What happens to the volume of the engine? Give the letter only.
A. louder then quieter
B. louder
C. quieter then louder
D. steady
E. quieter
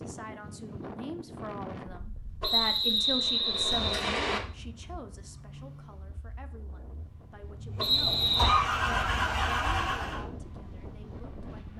C.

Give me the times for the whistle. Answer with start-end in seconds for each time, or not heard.
2.4-4.4, 7.8-8.6.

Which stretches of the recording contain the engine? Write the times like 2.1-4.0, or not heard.
5.1-10.2.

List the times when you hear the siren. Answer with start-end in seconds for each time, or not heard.
not heard.